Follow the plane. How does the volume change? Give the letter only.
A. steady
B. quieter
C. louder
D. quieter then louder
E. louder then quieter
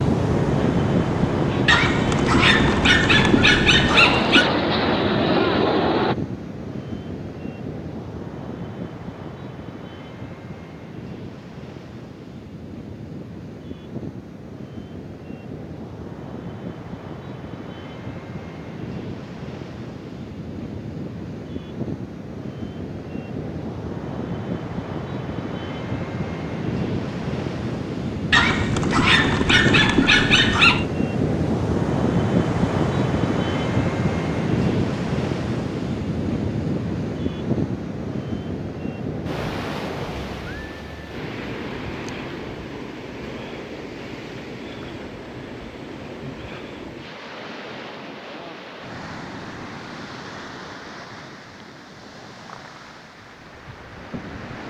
C.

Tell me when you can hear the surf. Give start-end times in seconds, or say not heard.
0.0-54.6.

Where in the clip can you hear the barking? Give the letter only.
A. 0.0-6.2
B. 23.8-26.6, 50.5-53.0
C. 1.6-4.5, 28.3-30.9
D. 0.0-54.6
C.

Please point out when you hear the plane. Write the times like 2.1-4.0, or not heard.
0.0-6.2.